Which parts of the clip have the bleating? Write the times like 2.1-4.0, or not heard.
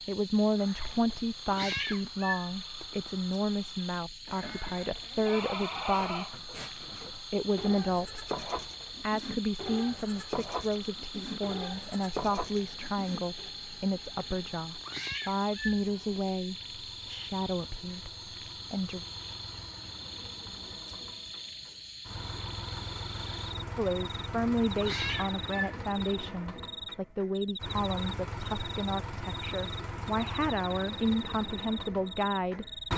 4.2-13.5.